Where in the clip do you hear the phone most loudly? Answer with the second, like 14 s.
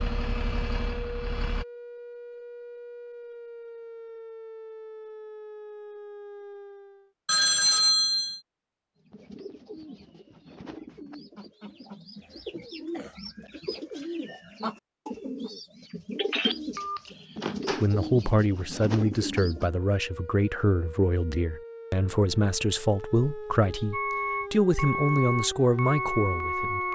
8 s.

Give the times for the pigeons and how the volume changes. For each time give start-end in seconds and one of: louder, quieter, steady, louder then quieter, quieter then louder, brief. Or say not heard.
9.0-19.7 louder.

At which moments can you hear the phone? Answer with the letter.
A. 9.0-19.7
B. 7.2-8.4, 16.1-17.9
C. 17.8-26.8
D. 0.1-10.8
B.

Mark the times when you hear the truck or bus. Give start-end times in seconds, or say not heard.
0.0-1.6, 23.9-26.8.